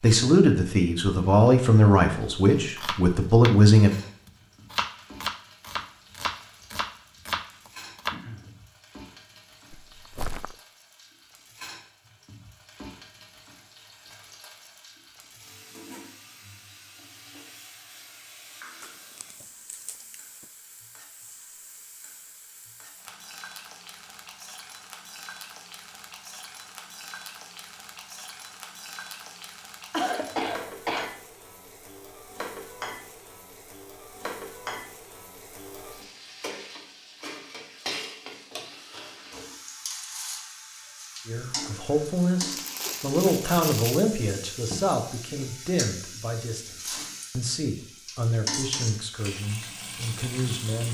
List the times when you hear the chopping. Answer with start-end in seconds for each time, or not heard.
2.8-8.2.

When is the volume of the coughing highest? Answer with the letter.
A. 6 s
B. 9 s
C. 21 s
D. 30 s
D.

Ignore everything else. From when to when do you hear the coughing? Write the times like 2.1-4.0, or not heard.
8.1-8.5, 29.9-31.1.